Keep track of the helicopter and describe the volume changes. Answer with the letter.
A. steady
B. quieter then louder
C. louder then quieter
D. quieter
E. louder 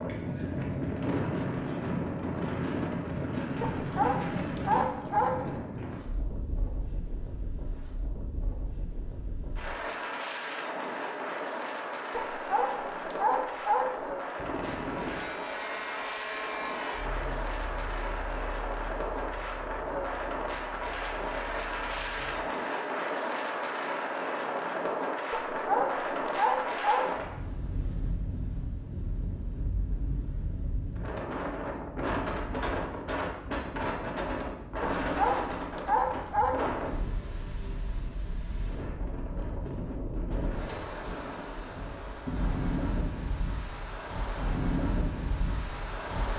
D.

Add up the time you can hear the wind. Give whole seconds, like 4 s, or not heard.
46 s.